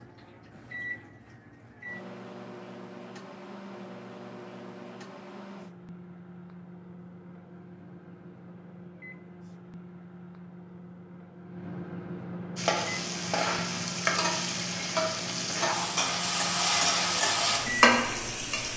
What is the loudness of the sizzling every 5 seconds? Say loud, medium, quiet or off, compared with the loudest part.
off, off, loud, loud.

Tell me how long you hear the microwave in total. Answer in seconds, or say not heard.
19 s.